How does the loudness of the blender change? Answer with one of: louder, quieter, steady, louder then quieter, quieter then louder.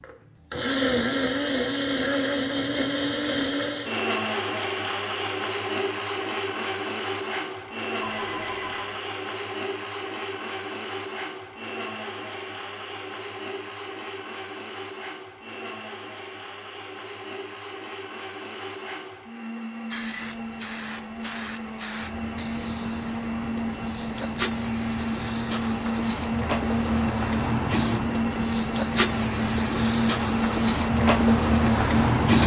quieter then louder.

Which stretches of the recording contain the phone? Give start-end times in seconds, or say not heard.
8.0-9.0.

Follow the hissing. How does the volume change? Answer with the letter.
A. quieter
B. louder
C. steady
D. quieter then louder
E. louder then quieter
B.